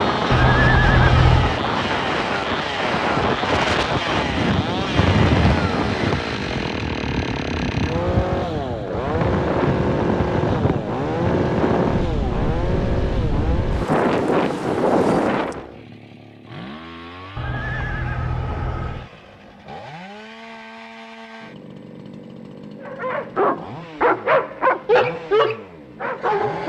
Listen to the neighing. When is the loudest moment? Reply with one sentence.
The volume of the neighing peaks at 1 second.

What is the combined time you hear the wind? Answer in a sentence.
The wind can be heard for 16 seconds in total.